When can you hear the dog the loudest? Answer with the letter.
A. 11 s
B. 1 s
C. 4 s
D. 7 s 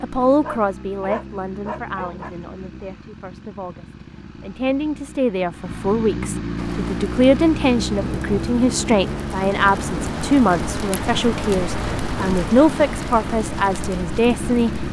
B.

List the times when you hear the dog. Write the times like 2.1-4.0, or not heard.
0.4-2.4.